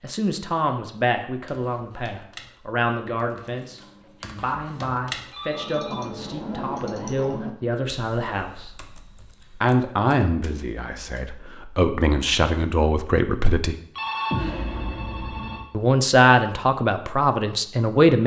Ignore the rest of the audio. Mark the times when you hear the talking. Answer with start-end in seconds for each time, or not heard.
0.0-8.7, 9.6-13.8, 15.7-18.2.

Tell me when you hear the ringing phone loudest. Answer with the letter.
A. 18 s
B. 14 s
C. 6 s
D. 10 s
B.